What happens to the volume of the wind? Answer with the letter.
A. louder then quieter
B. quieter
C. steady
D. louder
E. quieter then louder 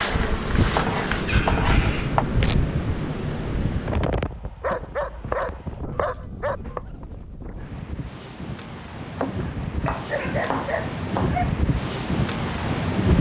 E.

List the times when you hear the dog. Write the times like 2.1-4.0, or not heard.
1.2-2.2, 4.6-6.6, 9.8-11.5.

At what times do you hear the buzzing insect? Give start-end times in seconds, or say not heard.
0.0-2.5.